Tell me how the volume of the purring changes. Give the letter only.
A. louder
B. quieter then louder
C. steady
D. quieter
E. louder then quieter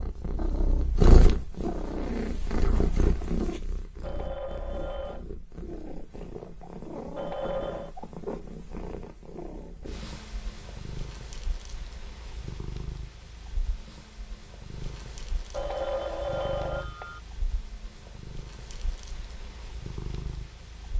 D.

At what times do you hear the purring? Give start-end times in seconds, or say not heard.
0.0-20.9.